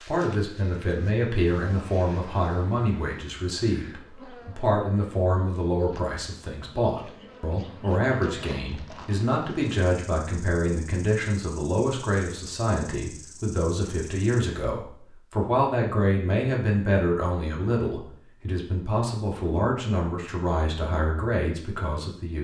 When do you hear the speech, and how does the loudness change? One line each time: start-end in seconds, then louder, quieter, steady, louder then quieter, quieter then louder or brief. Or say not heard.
0.0-22.4 steady.